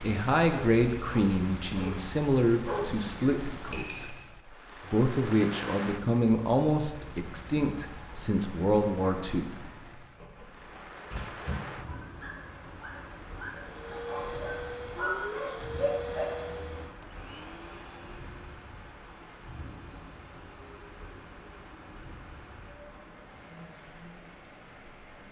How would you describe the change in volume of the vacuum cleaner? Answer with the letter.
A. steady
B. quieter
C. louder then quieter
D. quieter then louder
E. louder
B.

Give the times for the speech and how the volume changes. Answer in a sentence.
The speech can be heard from 0.0 to 9.5 s, at a steady volume.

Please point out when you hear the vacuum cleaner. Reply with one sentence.
The vacuum cleaner can be heard from 13.6 to 25.2 s.